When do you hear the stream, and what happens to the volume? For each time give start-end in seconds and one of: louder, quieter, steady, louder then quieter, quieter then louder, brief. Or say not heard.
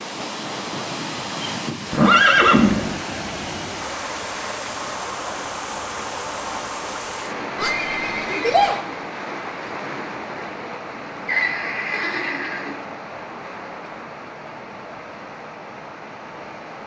0.0-16.8 quieter.